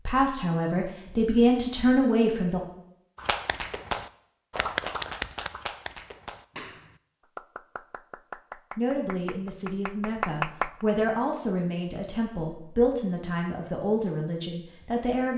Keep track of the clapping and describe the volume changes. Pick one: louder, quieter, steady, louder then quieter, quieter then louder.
quieter then louder.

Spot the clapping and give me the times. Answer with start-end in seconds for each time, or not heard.
3.1-10.8.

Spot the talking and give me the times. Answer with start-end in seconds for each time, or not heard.
0.1-2.6, 8.8-15.3.